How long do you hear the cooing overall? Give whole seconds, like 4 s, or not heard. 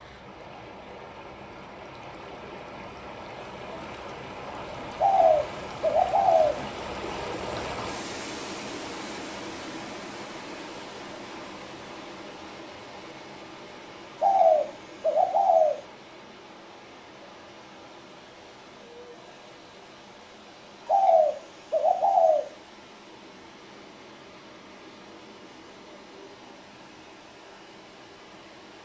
5 s.